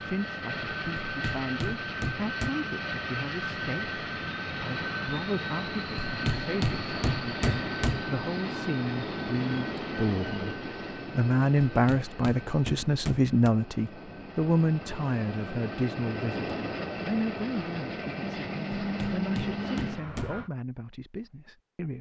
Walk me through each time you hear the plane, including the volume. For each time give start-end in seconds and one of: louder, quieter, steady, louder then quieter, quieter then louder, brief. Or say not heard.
0.0-20.5 quieter then louder.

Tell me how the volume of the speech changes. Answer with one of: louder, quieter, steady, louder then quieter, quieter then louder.
louder then quieter.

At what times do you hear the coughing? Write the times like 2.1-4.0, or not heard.
not heard.